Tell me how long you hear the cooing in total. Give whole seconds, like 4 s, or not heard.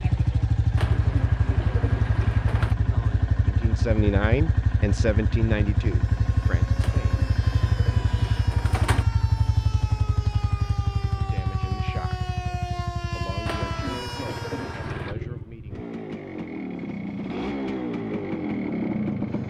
6 s.